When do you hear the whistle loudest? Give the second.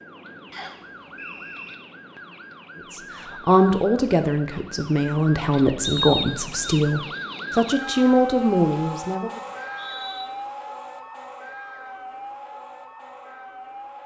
6 s.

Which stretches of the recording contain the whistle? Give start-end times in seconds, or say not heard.
0.5-1.8, 5.8-6.8, 9.4-10.2.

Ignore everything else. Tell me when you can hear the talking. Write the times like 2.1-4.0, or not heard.
2.9-9.4.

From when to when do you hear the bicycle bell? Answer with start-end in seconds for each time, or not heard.
not heard.